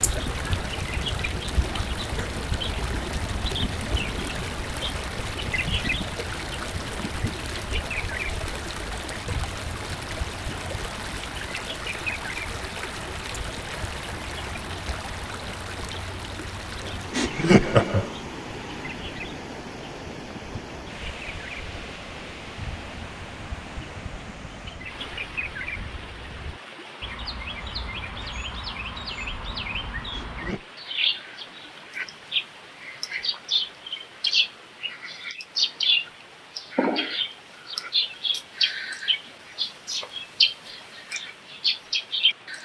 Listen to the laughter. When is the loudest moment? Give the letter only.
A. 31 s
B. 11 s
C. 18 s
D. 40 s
C.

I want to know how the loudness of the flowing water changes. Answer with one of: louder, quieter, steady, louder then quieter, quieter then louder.
quieter.